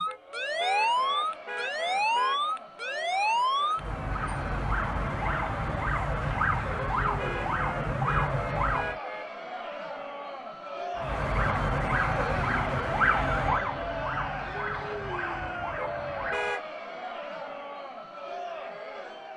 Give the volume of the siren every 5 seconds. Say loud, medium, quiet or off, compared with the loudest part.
loud, loud, loud, medium.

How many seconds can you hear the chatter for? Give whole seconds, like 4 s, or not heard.
19 s.